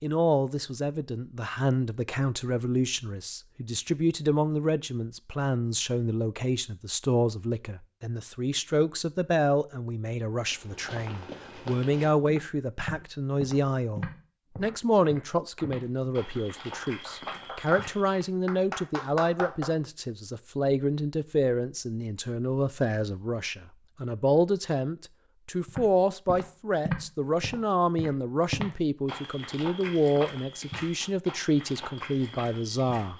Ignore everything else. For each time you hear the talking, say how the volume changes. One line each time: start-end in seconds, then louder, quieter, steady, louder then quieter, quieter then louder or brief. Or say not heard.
0.0-33.1 steady.